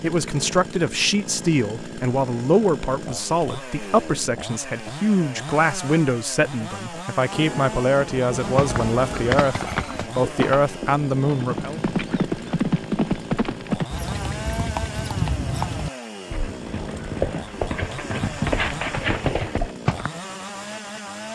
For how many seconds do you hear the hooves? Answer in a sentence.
The hooves can be heard for 12 seconds in total.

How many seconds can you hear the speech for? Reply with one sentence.
You can hear the speech for 12 seconds altogether.